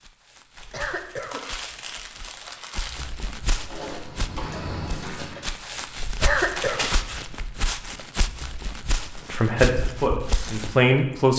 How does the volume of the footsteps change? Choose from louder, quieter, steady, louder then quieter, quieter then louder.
louder.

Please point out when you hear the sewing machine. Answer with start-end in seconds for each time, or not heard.
3.6-5.6.